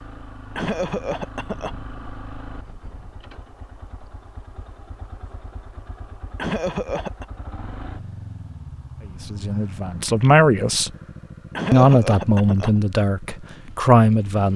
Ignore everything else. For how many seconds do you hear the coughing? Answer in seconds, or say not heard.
3 s.